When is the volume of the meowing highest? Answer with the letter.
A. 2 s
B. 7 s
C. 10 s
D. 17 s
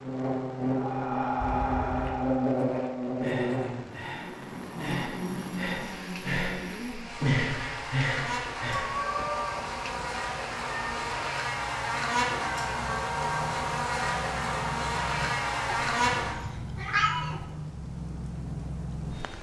D.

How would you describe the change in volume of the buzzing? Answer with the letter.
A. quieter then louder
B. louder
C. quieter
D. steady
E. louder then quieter
A.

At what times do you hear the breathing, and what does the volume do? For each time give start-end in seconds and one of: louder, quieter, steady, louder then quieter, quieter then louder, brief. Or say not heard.
0.7-8.9 quieter then louder.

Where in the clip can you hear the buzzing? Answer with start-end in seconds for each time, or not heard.
0.0-16.4.